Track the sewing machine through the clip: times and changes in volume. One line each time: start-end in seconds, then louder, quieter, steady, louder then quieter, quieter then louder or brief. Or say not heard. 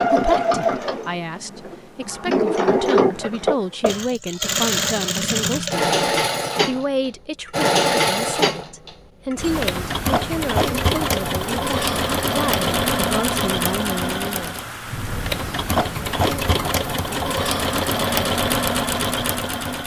0.0-19.8 steady.